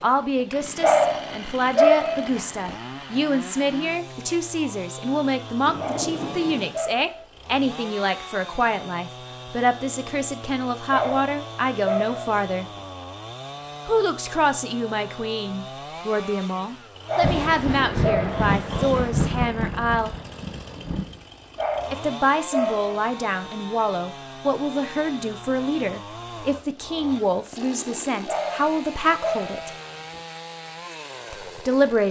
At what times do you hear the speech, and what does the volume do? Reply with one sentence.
You can hear the speech from 0.0 to 12.7 s, at a steady volume; from 13.8 to 20.1 s, at a steady volume; from 21.9 to 29.7 s, at a steady volume; and briefly from 31.3 to 32.0 s.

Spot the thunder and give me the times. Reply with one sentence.
You can hear the thunder from 5.7 to 6.8 s and from 17.2 to 21.2 s.